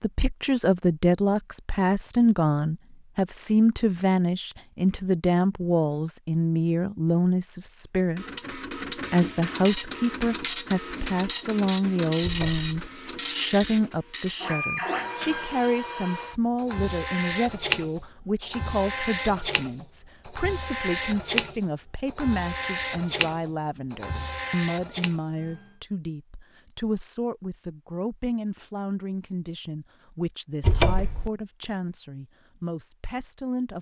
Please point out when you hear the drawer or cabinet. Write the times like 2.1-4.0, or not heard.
12.2-12.7, 30.6-31.3.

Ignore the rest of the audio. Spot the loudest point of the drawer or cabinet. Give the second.
31 s.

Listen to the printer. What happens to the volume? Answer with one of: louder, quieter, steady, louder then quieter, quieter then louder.
steady.